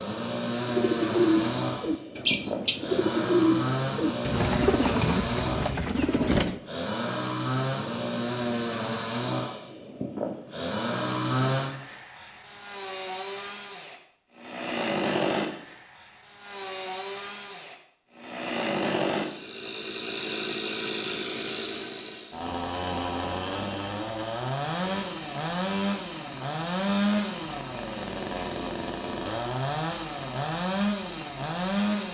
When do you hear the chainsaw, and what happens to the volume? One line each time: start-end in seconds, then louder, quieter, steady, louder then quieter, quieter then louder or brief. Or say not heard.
0.0-32.1 steady.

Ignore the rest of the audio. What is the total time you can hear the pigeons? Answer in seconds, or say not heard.
6 s.